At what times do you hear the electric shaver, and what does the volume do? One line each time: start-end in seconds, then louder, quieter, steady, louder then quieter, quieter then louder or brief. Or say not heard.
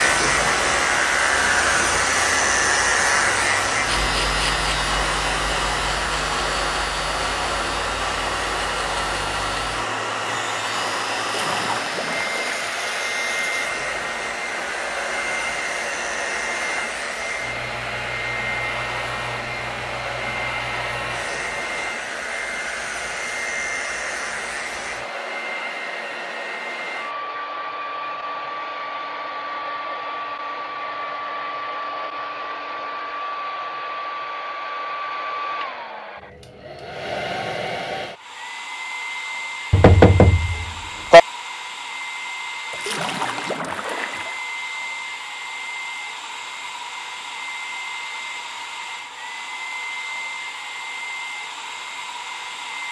0.0-25.1 quieter.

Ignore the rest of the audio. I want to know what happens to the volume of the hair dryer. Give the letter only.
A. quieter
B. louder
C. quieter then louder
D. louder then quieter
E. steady
A.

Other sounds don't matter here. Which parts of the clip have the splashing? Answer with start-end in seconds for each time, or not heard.
11.2-12.8, 42.7-44.4.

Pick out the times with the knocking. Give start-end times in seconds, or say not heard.
39.7-41.2.